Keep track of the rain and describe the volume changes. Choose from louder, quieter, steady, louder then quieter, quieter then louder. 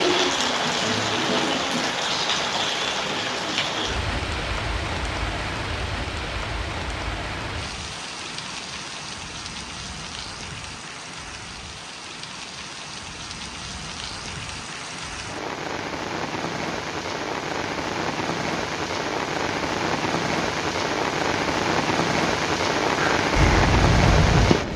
quieter then louder.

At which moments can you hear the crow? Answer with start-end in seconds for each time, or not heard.
22.9-24.7.